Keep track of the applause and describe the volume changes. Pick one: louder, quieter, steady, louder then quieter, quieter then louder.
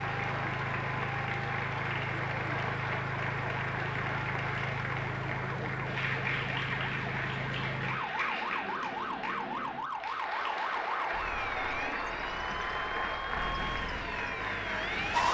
steady.